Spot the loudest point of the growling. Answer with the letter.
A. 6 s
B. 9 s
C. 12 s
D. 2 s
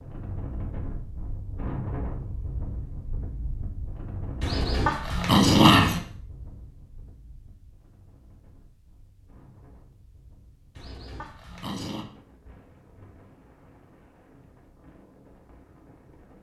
A.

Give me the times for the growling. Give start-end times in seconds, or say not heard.
4.4-6.0, 10.8-12.1.